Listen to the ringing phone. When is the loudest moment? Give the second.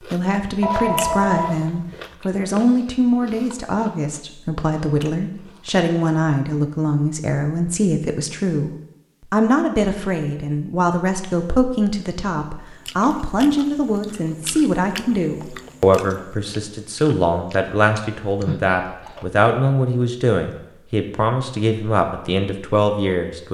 1 s.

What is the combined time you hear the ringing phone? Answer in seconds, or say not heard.
2 s.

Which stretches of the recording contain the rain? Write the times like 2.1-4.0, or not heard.
not heard.